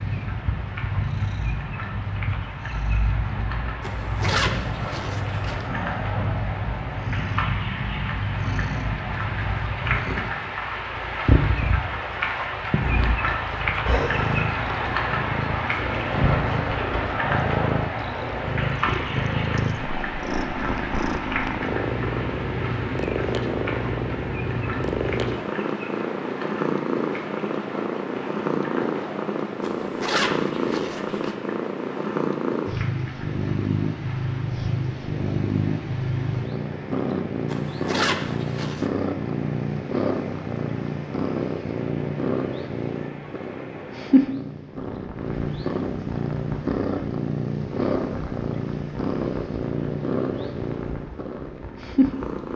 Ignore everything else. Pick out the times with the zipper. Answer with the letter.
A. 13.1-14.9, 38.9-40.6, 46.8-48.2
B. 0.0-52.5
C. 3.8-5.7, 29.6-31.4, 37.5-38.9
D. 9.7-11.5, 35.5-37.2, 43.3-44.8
C.